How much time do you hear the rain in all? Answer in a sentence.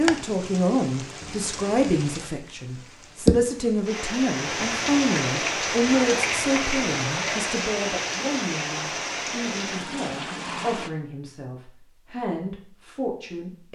You can hear the rain for 11 seconds altogether.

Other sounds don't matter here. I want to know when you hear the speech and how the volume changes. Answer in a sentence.
You can hear the speech from 0.0 to 13.6 s, getting quieter.